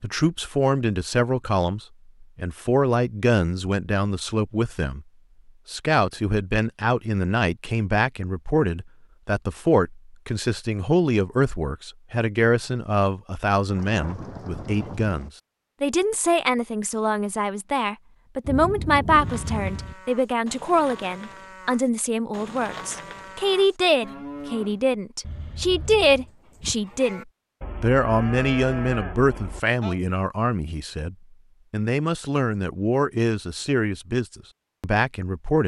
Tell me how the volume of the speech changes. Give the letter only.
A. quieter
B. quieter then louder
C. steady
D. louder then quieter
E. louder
C.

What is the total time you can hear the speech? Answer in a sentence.
The speech can be heard for 35 seconds in total.